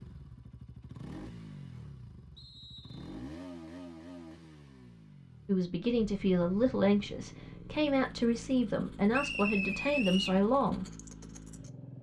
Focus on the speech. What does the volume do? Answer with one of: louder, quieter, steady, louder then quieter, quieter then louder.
steady.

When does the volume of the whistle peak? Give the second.
10 s.